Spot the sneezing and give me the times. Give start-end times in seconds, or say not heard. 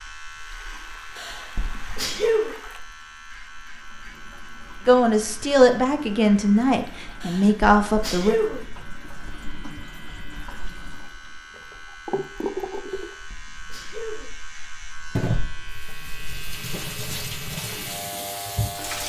1.1-2.5, 7.2-8.7, 12.8-14.3.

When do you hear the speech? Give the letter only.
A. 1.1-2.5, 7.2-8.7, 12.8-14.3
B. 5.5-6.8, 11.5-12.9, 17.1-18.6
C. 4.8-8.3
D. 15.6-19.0
C.